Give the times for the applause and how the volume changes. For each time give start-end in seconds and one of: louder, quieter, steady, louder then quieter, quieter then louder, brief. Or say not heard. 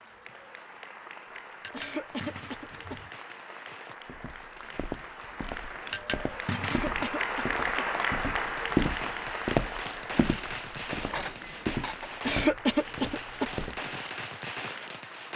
0.0-15.3 louder then quieter.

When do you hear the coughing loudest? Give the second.
13 s.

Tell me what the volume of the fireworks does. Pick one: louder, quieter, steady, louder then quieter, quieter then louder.
louder.